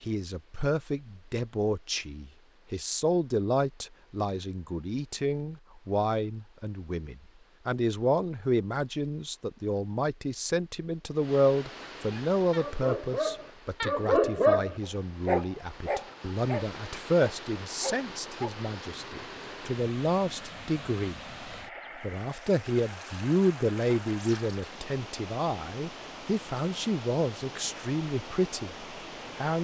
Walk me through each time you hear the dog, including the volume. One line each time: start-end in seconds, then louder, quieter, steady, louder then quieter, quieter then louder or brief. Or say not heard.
12.1-18.6 louder then quieter.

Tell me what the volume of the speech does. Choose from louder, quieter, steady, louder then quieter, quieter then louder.
steady.